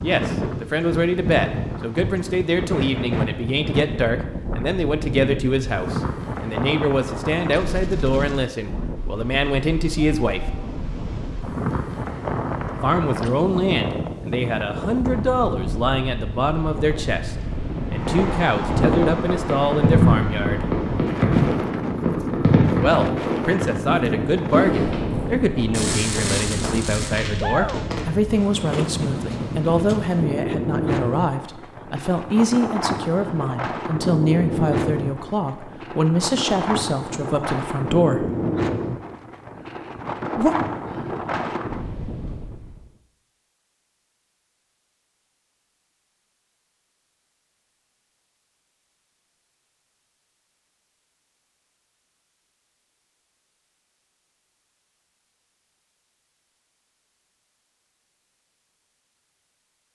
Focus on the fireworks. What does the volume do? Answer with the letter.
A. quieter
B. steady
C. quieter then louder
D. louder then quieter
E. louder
A.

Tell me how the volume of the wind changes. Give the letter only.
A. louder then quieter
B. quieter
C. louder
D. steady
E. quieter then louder
D.